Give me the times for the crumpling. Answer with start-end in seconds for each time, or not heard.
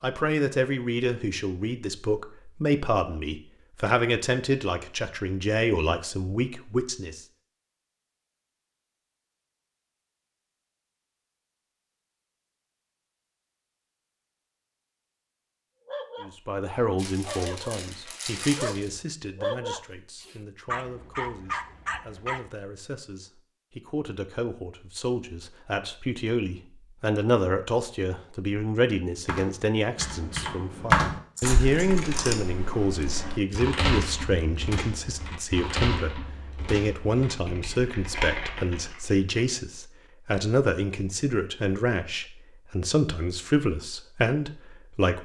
16.9-18.9, 31.4-32.4.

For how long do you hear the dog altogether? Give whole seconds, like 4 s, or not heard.
6 s.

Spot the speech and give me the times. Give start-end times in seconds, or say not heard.
0.0-7.2, 16.2-45.2.